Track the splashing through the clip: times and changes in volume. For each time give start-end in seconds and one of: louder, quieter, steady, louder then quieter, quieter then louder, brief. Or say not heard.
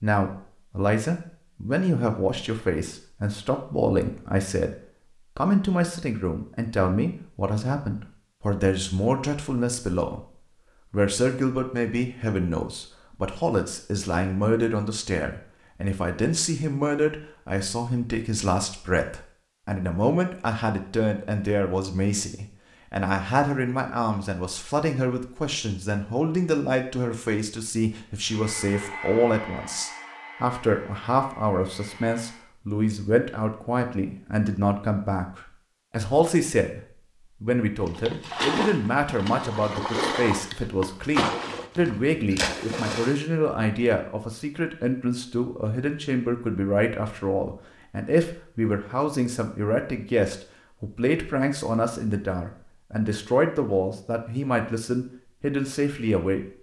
37.9-43.2 steady.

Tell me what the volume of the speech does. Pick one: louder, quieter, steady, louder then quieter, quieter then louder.
steady.